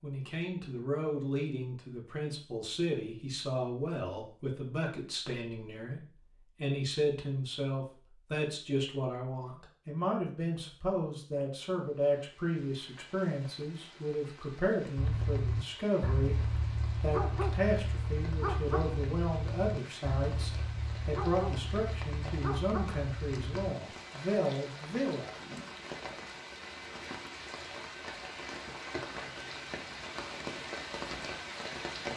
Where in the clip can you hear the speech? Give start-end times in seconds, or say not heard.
0.0-16.4, 17.0-25.4.